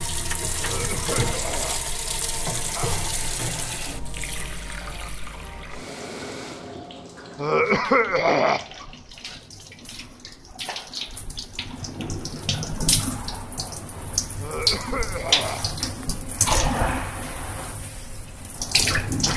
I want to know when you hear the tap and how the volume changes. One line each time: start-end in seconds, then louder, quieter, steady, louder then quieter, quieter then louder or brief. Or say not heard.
0.0-19.3 quieter then louder.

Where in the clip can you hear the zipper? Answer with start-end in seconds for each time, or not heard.
not heard.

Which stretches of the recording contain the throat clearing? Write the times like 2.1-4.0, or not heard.
0.6-3.1, 7.3-8.7, 14.4-16.1.